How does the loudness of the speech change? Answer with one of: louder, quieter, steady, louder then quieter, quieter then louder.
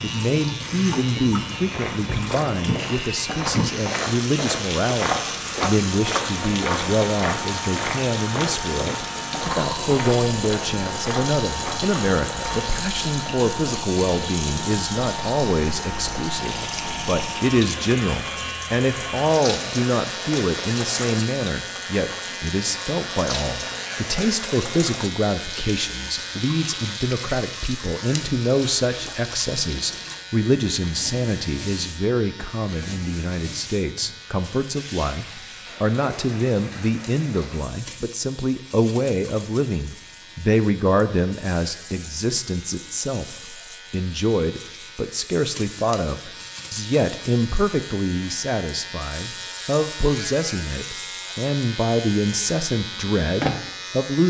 steady.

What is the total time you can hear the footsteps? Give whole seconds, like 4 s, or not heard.
11 s.